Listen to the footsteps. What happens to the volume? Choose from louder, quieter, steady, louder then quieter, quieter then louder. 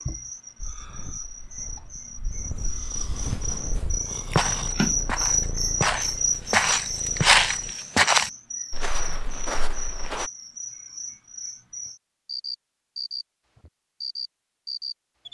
louder then quieter.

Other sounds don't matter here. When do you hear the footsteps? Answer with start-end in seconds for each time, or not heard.
0.6-10.3.